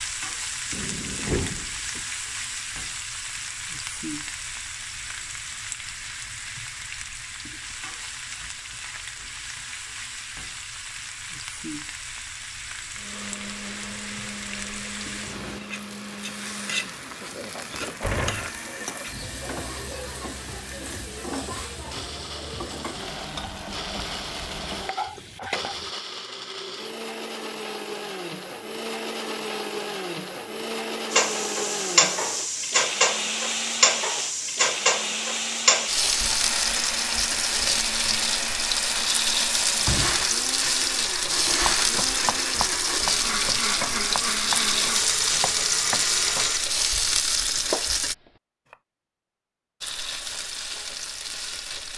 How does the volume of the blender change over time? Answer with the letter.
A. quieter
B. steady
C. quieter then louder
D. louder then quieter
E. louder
E.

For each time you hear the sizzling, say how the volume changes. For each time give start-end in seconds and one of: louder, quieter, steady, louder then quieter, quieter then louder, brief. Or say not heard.
0.0-25.9 steady
31.1-48.1 steady
49.8-51.9 brief.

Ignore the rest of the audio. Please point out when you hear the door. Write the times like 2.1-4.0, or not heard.
0.7-2.0, 17.7-18.6, 39.8-40.7.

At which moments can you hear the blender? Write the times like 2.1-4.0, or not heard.
12.9-46.8.